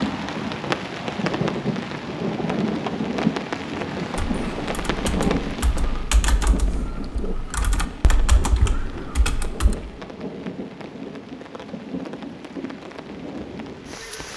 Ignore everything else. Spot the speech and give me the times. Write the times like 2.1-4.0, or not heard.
not heard.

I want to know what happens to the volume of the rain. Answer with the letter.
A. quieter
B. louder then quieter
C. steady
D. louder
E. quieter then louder
A.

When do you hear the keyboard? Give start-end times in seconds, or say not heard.
4.2-9.8.